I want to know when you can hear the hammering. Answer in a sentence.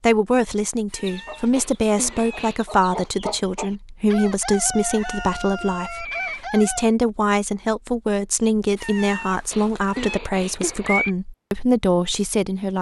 The hammering can't be heard in this clip.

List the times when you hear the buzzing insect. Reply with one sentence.
The buzzing insect can't be heard in this clip.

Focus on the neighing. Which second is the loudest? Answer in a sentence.
The loudest moment of the neighing is at 11 seconds.